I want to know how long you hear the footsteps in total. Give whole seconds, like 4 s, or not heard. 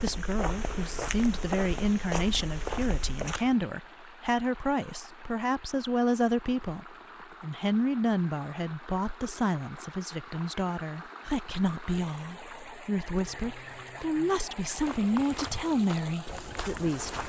6 s.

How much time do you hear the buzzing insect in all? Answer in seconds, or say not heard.
not heard.